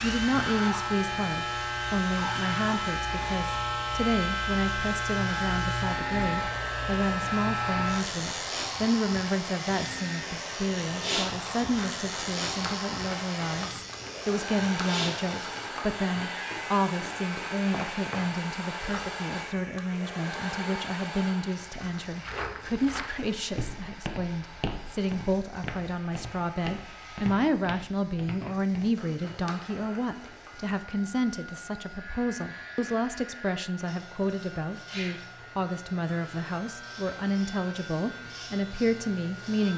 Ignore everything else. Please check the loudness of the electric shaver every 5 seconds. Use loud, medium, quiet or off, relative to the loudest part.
loud, loud, medium, medium, quiet, quiet, quiet, quiet.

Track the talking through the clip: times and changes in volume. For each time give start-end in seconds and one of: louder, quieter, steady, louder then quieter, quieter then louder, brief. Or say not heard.
0.0-39.7 steady.